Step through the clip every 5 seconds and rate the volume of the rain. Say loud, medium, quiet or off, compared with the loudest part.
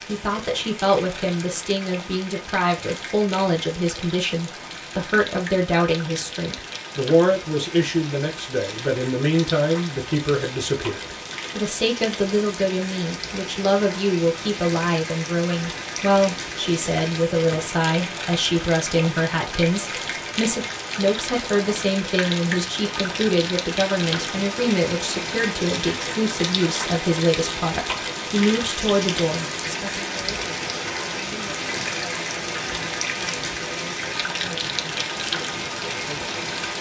medium, medium, medium, loud, loud, loud, loud, loud.